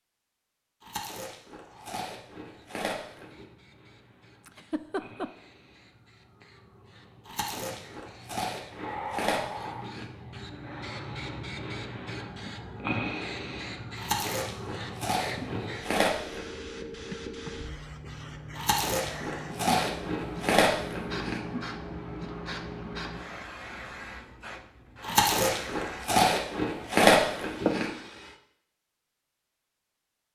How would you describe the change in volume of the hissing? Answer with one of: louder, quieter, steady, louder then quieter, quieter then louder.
louder.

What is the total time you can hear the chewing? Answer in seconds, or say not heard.
14 s.